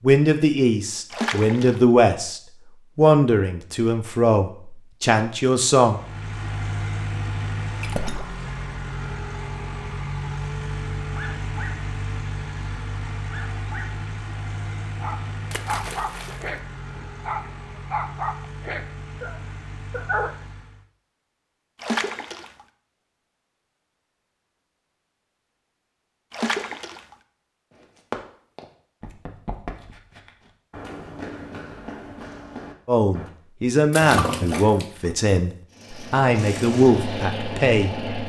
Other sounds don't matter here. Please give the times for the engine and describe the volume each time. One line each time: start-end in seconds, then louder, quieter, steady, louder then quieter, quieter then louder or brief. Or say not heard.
5.8-20.9 quieter
35.7-38.2 brief.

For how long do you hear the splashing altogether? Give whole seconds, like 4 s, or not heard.
6 s.